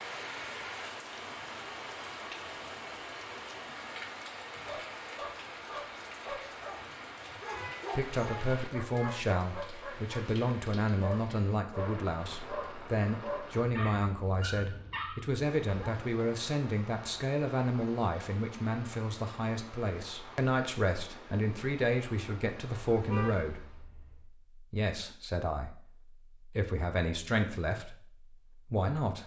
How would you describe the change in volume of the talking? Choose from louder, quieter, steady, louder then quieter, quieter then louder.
steady.